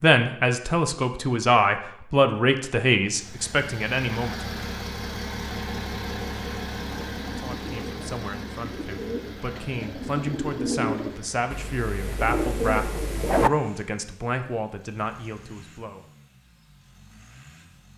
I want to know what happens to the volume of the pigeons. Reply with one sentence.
The loudness of the pigeons goes up.